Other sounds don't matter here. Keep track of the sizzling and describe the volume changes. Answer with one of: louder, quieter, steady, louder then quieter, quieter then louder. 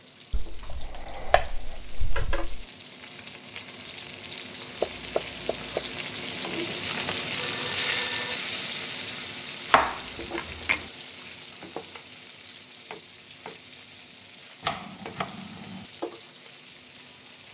louder then quieter.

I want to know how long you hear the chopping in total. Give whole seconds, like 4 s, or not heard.
6 s.